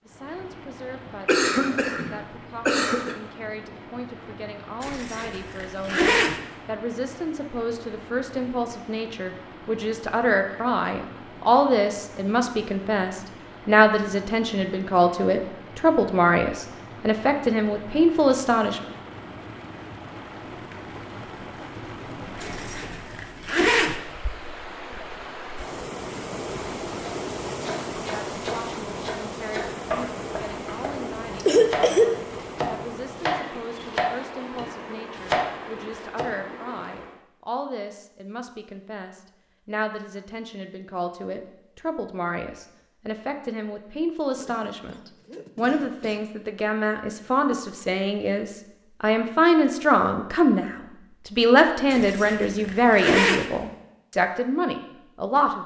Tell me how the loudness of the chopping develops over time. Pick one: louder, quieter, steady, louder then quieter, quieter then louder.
louder.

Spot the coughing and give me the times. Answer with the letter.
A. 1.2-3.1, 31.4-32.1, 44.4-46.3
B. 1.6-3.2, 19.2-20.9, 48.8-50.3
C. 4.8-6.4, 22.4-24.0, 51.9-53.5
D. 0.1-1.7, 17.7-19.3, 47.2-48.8
A.